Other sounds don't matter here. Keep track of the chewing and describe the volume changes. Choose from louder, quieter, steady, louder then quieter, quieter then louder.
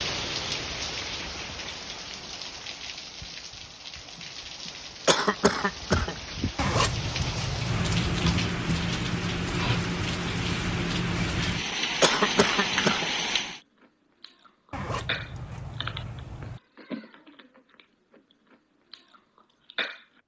quieter.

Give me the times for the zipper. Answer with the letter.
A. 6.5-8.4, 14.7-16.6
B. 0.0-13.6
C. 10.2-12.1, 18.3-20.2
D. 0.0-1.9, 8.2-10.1
A.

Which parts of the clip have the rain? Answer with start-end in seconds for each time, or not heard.
0.0-13.6.